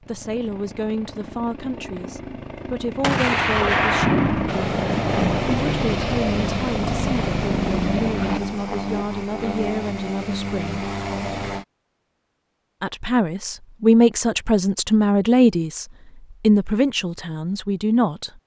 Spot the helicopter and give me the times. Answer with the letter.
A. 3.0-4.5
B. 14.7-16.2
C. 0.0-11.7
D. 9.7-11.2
C.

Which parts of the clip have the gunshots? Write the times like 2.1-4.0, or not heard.
3.0-4.5.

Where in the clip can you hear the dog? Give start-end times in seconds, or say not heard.
not heard.